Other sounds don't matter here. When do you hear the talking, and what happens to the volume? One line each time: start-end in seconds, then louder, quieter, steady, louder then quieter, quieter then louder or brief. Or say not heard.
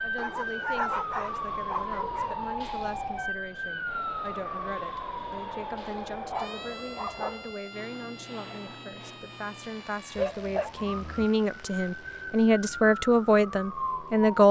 0.0-14.4 louder.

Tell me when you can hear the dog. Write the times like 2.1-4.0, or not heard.
0.1-2.4, 6.3-7.5, 10.2-11.2.